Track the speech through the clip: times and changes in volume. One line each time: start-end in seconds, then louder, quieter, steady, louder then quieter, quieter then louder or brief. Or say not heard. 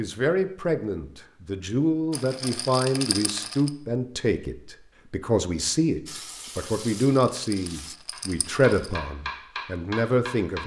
0.0-10.6 steady.